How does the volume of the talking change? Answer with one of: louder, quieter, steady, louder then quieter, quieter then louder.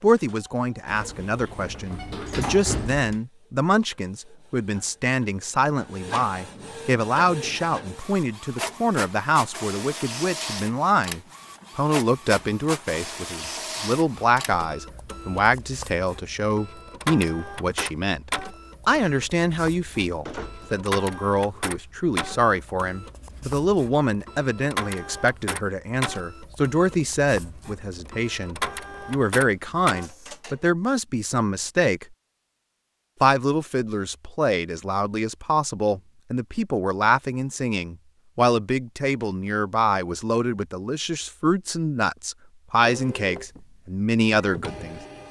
steady.